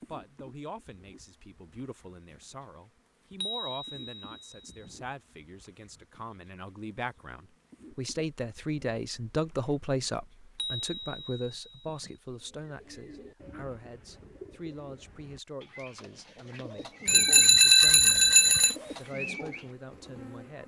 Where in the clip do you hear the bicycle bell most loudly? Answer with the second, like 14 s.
18 s.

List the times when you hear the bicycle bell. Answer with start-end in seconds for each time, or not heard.
3.4-5.0, 10.6-12.2, 17.1-18.8.